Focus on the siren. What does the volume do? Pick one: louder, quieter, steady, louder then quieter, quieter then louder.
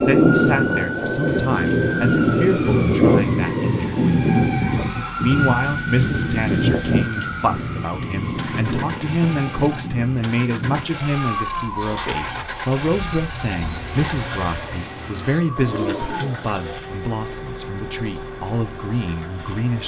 quieter.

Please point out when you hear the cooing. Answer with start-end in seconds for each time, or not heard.
11.7-16.8.